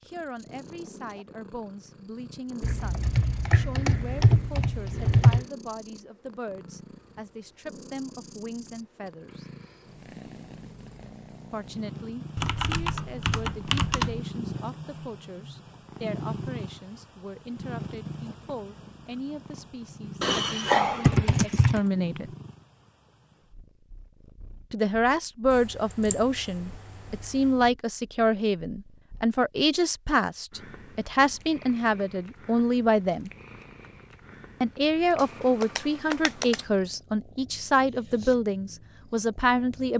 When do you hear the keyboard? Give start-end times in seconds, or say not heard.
2.6-5.5, 12.3-14.2, 20.2-21.8, 25.5-27.5, 35.2-36.6.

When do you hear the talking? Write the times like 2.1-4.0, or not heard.
0.1-9.4, 11.5-22.3, 24.7-33.3, 34.6-39.9.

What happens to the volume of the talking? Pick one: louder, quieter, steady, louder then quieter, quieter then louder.
louder.